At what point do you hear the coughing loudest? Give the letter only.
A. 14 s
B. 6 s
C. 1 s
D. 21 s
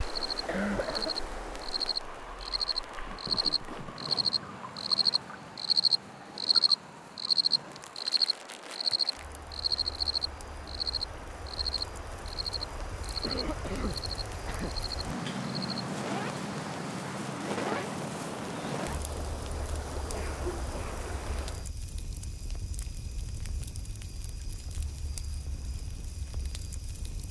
C.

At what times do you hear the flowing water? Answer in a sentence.
You can hear the flowing water from 0.0 to 21.7 s.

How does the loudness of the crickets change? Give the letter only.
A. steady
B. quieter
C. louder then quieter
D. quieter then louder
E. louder
C.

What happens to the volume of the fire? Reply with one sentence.
The volume of the fire goes up, then down.